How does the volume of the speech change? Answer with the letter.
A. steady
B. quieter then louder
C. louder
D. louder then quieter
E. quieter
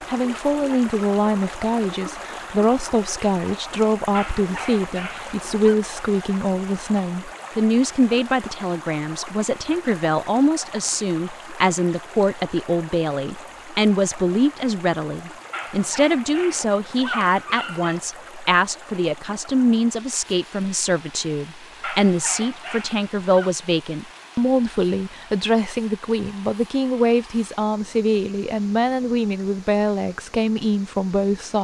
A.